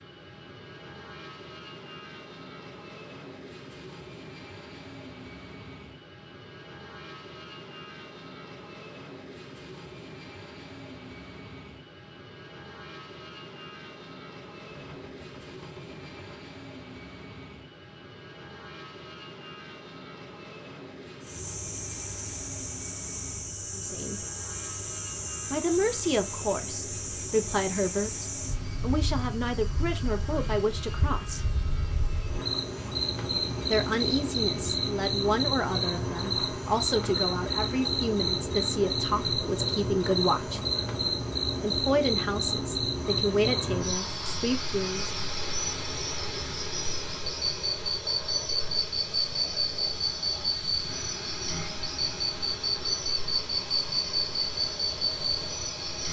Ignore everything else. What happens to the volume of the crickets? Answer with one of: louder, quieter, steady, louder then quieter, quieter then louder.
louder.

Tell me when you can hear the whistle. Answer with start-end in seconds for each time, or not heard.
not heard.